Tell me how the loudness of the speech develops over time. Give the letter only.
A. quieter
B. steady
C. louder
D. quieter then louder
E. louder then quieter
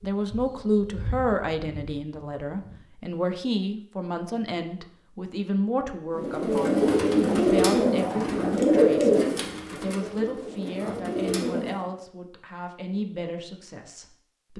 A.